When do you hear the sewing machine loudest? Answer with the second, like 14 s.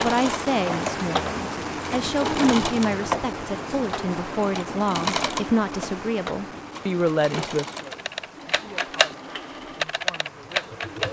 3 s.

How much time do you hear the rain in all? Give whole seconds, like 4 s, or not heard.
11 s.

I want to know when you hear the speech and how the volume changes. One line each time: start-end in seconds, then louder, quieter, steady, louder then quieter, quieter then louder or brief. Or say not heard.
0.0-10.8 quieter.